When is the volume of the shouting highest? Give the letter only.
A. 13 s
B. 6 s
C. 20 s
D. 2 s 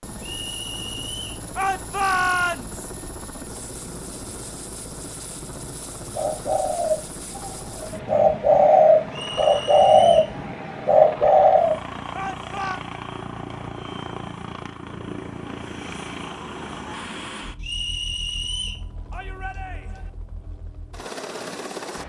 D.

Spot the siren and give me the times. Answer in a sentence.
The siren can't be heard in this clip.